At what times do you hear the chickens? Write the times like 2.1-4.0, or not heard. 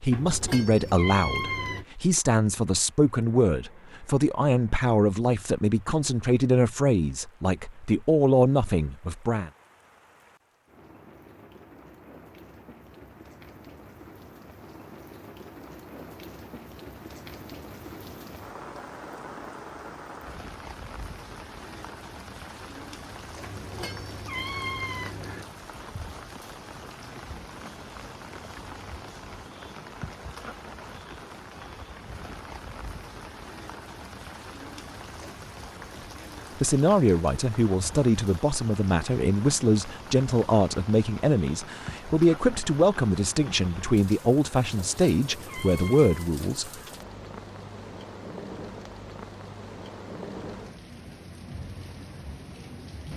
not heard.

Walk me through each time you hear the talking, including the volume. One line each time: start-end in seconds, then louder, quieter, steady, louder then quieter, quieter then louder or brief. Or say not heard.
0.0-9.5 steady
36.5-46.7 steady.